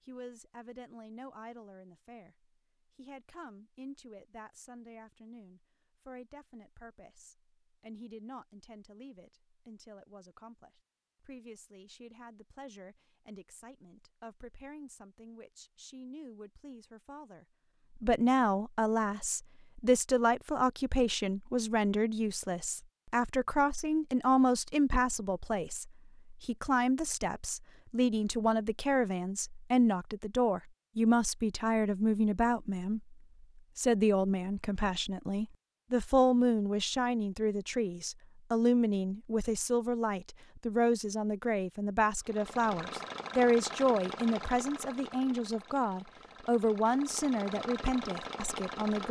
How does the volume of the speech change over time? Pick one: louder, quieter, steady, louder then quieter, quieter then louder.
louder.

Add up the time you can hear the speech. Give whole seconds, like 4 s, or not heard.
49 s.